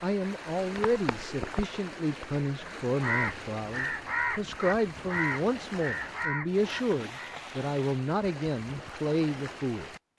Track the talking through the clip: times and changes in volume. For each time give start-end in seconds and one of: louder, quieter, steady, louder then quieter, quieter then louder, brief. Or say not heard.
0.0-9.9 steady.